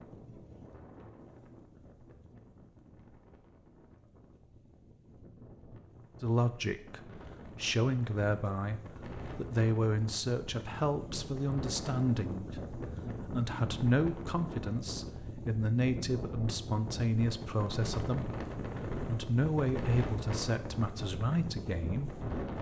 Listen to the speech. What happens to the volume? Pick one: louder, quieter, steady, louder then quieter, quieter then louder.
steady.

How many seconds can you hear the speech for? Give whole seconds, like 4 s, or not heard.
15 s.